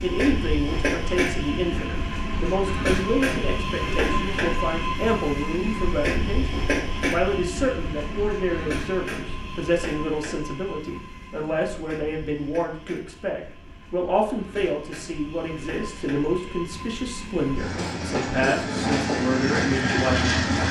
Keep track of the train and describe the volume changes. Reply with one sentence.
The loudness of the train goes down, then up.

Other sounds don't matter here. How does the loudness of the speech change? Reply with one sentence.
The volume of the speech stays about the same.